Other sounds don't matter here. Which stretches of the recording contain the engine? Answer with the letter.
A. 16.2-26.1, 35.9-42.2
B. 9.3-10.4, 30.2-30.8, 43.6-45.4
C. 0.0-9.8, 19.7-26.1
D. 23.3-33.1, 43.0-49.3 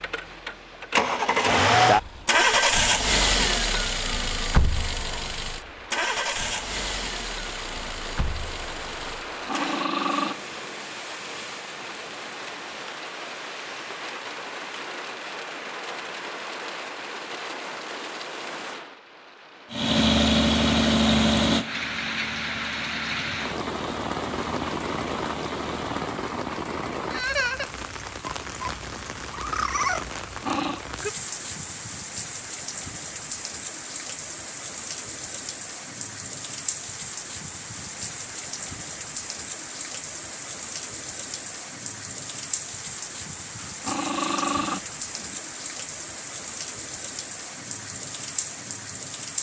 C.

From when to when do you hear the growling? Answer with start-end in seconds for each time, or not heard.
9.3-10.4, 30.2-30.8, 43.6-45.4.